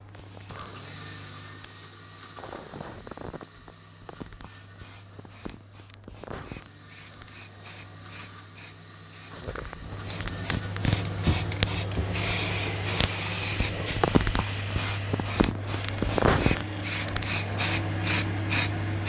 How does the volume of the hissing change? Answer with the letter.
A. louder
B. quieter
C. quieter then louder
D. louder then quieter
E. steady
A.